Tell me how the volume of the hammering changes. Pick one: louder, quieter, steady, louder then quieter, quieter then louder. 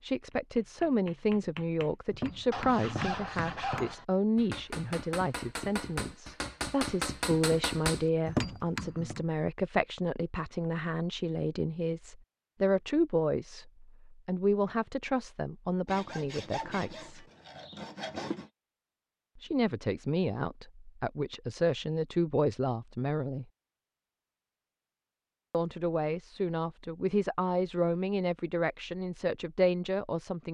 louder.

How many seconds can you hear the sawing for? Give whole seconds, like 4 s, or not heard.
4 s.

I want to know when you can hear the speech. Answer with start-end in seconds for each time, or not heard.
0.0-17.2, 19.4-23.4, 25.5-30.4.